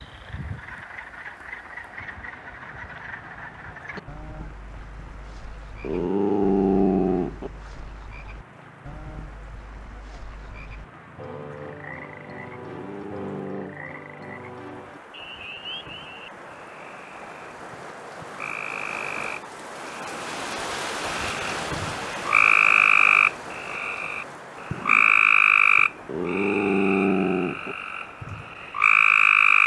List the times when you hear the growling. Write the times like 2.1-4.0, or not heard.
5.8-7.5, 12.6-13.8, 26.1-27.8.